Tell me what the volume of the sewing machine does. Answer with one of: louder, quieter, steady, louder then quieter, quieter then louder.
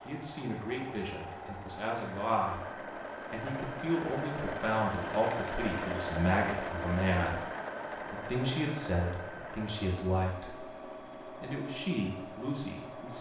louder then quieter.